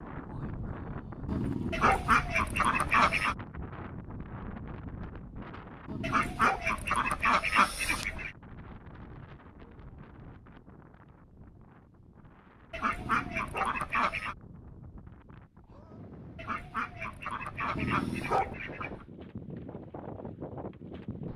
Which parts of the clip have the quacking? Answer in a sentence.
The quacking can be heard from 1.7 to 3.4 s, from 6.0 to 8.3 s, from 12.7 to 14.3 s and from 16.4 to 19.1 s.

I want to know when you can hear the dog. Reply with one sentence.
You can hear the dog from 1.2 to 2.1 s, from 5.8 to 6.7 s, from 12.9 to 13.8 s and from 17.8 to 18.6 s.